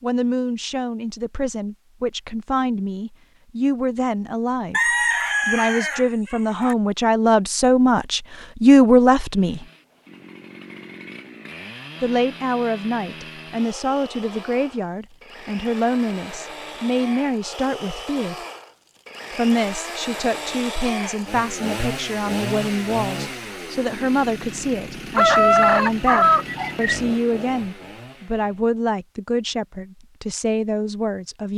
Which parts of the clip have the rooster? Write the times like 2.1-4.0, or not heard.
4.7-6.8, 25.1-27.1.